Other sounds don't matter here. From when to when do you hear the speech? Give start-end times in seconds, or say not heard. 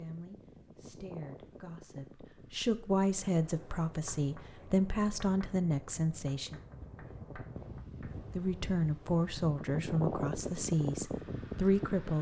0.0-6.6, 8.3-12.1.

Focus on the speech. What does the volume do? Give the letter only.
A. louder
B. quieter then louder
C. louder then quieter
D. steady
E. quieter
A.